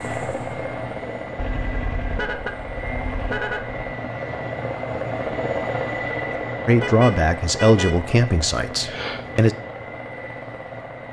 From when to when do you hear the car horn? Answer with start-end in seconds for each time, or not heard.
1.4-3.8, 6.8-8.0.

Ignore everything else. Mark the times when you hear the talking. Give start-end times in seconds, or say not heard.
6.7-9.6.